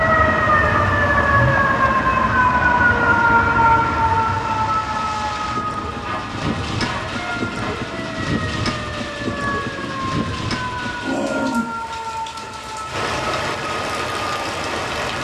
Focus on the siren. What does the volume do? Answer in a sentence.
The volume of the siren goes down.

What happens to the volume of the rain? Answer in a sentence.
The volume of the rain goes up.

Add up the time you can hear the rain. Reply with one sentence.
You can hear the rain for 15 seconds altogether.